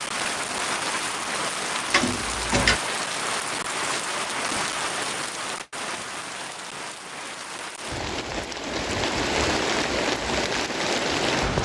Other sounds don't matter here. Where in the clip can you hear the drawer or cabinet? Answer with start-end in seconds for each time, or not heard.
1.9-2.8.